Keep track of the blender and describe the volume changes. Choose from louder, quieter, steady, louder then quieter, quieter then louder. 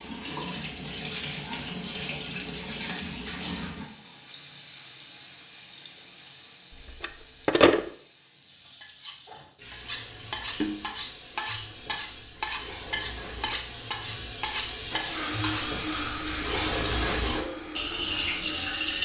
quieter.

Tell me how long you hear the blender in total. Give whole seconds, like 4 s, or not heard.
4 s.